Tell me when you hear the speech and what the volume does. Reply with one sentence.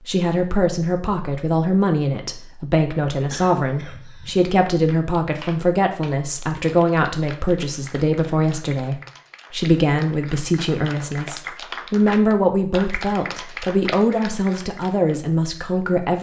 The speech can be heard from 0.1 to 16.1 s, at a steady volume.